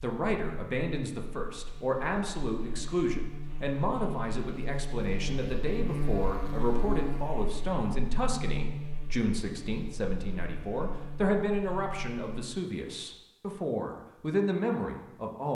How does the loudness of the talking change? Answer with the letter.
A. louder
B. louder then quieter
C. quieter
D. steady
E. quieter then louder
D.